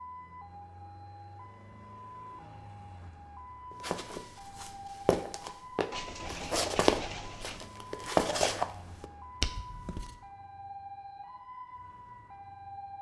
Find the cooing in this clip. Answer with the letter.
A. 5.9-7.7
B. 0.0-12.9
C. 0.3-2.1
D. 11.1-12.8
A.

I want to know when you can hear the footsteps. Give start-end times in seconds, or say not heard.
3.8-10.2.